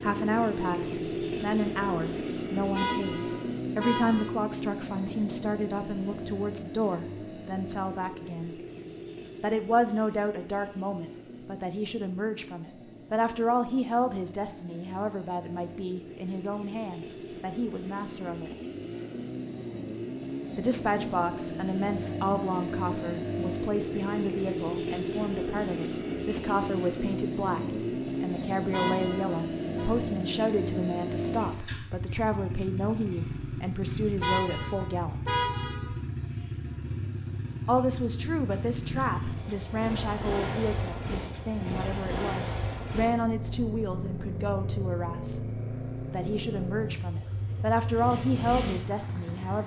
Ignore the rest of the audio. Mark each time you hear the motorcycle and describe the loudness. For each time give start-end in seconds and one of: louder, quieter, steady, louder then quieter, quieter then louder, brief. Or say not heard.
0.0-49.6 quieter then louder.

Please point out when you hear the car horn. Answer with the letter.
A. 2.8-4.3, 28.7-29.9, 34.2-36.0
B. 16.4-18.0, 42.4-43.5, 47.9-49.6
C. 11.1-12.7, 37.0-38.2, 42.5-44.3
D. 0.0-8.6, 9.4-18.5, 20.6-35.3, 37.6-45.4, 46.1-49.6
A.